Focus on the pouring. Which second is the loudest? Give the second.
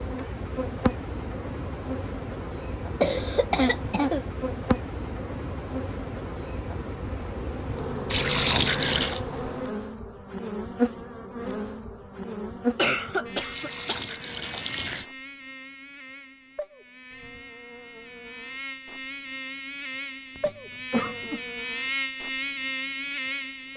9 s.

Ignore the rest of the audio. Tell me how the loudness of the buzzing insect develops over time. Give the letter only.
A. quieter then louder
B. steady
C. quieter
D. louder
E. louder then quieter
A.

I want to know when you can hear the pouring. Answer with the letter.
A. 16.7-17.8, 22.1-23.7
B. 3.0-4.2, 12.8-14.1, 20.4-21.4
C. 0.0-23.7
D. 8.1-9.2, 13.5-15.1
D.